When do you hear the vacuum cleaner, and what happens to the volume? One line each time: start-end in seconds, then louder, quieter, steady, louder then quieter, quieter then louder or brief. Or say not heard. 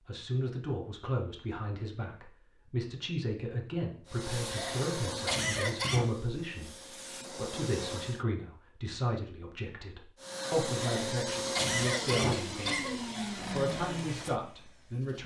4.0-8.2 quieter then louder
10.2-15.2 quieter.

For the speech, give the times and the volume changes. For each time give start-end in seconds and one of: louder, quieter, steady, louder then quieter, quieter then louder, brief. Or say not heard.
0.1-15.2 steady.